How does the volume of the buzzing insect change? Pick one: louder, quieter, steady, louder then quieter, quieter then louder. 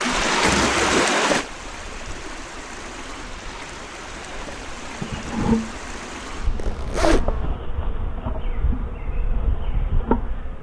louder then quieter.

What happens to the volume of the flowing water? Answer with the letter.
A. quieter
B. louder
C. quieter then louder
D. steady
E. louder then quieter
A.